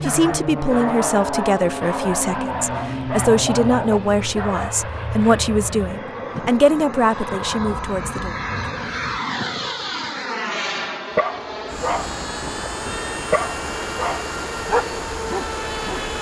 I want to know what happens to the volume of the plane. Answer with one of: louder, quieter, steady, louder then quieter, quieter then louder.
steady.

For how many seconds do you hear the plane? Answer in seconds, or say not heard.
16 s.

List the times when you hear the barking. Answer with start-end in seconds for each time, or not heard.
0.0-4.8, 11.2-16.1.